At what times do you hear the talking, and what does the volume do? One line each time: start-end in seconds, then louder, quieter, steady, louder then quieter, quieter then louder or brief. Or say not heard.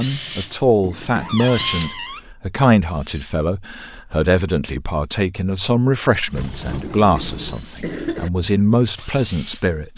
0.0-9.9 steady.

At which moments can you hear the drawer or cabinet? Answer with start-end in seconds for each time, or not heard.
1.2-2.3, 6.3-7.6.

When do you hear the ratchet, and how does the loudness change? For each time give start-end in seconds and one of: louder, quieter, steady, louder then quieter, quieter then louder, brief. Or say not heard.
not heard.